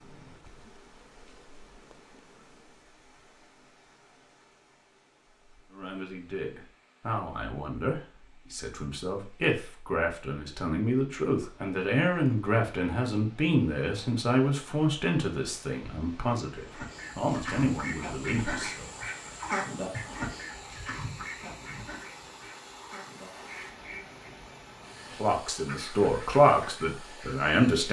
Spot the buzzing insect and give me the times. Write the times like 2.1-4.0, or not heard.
0.0-2.9.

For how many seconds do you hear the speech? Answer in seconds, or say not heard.
16 s.